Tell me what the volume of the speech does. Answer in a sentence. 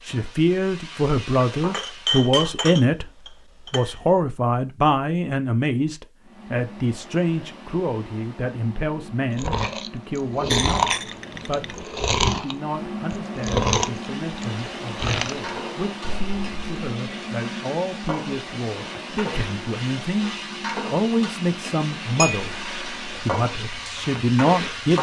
The volume of the speech goes down, then up.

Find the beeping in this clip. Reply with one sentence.
The beeping can't be heard in this clip.